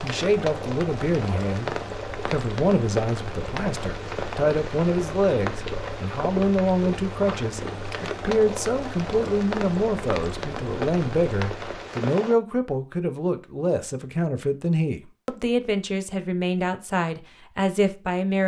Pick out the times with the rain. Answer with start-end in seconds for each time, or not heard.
0.0-12.3.